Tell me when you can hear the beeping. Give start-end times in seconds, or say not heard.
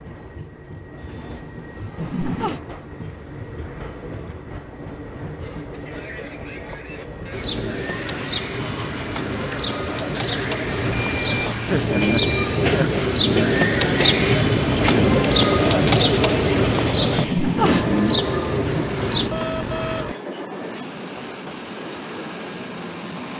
0.9-2.5, 10.7-12.6, 19.0-20.1.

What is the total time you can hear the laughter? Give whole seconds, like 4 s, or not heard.
3 s.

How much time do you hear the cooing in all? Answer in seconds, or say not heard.
12 s.